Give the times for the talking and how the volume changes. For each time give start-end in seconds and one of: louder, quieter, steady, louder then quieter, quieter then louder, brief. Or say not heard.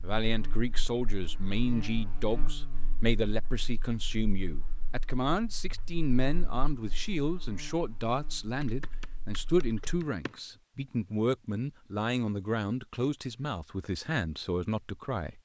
0.0-15.4 steady.